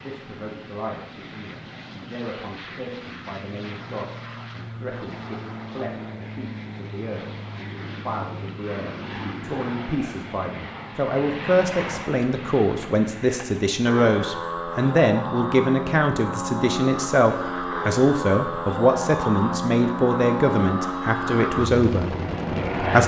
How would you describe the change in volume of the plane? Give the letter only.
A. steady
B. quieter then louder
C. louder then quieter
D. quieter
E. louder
E.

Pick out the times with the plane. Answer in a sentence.
You can hear the plane from 0.0 to 23.0 s.